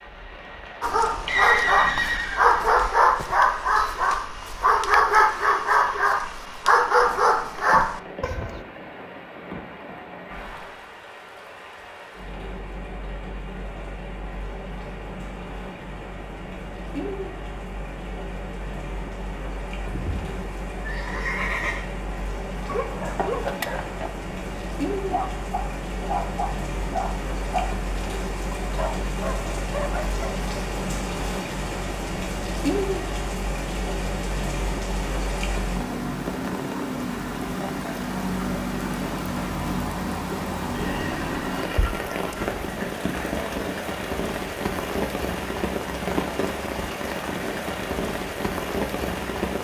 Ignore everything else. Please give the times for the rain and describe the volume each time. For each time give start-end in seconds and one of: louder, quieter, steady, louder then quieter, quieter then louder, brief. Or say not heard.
0.0-49.5 louder.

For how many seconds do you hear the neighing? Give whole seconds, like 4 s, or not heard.
5 s.